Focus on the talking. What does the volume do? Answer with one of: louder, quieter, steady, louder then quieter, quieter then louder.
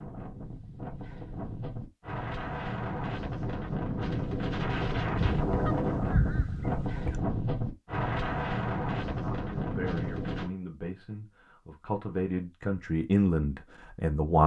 louder.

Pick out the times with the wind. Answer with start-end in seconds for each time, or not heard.
0.0-10.5.